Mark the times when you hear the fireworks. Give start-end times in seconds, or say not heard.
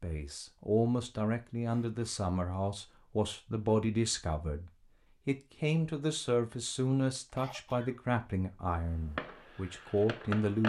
8.7-10.6.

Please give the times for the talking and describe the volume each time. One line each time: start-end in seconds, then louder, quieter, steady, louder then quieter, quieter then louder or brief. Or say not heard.
0.0-10.6 steady.